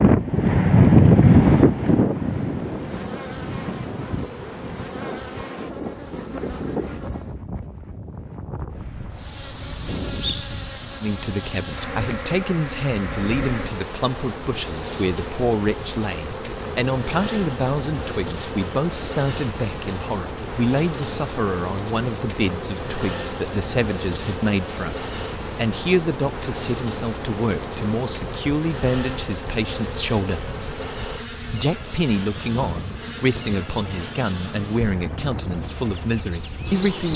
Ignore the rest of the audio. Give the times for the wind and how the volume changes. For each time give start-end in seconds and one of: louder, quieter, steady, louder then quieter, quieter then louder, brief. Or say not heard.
0.0-37.1 quieter.